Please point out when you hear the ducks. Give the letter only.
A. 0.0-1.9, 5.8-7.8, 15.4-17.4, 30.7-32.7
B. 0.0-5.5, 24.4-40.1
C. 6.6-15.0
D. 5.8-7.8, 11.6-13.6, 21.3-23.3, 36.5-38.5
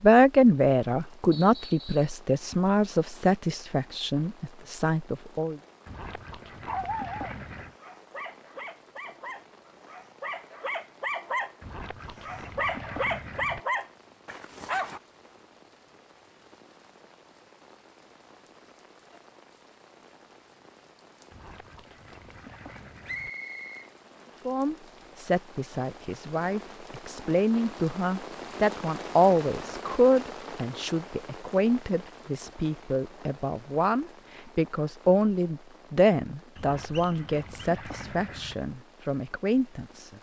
D.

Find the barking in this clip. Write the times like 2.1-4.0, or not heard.
6.6-15.0.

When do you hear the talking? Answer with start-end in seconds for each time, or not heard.
0.0-5.5, 24.4-40.1.